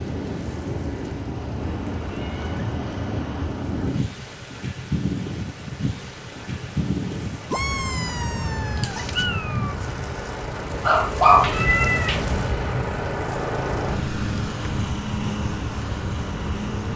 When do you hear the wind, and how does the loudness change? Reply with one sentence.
You can hear the wind from 0.0 to 16.9 s, at a steady volume.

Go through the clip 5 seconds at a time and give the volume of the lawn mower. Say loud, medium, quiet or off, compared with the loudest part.
quiet, medium, loud, loud.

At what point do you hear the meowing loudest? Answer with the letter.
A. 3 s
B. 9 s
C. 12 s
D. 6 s
C.